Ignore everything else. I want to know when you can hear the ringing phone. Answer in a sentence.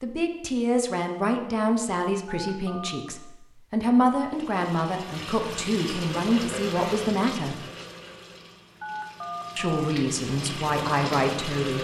The ringing phone can be heard from 2.2 to 3.2 s and from 8.8 to 9.8 s.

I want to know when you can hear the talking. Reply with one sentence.
The talking can be heard from 0.0 to 7.7 s and from 9.6 to 11.7 s.